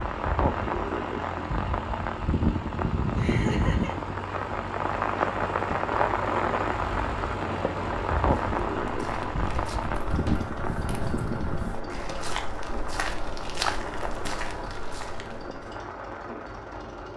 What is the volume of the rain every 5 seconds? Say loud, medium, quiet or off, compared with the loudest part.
loud, loud, medium, quiet.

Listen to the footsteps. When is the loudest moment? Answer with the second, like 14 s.
14 s.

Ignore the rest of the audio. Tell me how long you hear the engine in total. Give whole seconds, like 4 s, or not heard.
17 s.